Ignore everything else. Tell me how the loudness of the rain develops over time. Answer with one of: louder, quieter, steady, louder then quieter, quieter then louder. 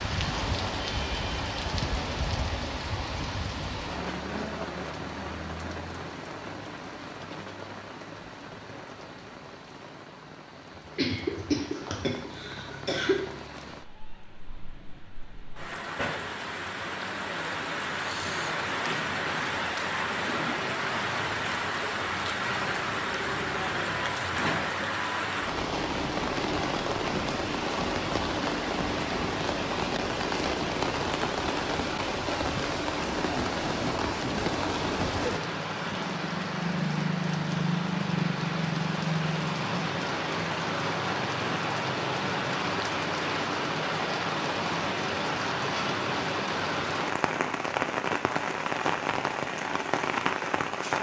louder.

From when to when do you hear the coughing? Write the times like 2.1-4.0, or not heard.
10.8-13.2.